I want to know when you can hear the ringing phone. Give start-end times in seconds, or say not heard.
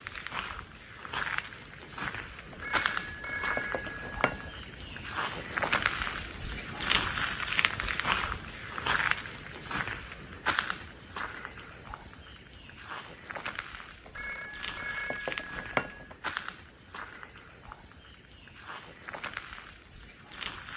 2.5-4.6, 14.1-16.1.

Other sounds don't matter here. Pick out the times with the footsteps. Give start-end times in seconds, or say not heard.
not heard.